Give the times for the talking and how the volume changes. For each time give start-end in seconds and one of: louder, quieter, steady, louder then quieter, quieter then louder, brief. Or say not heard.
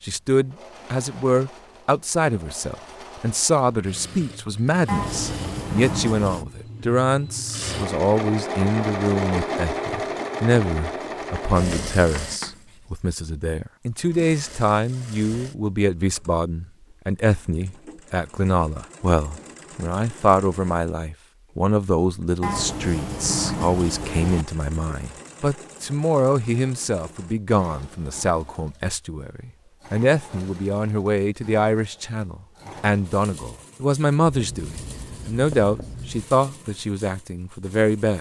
0.0-38.1 steady.